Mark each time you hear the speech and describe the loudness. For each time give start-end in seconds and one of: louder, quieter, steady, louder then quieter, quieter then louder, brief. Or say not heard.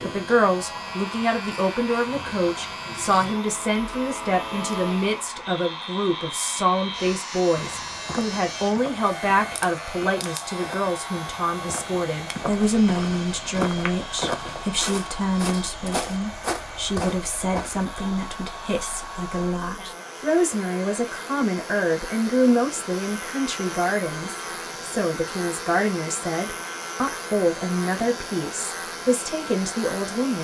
0.0-30.4 steady.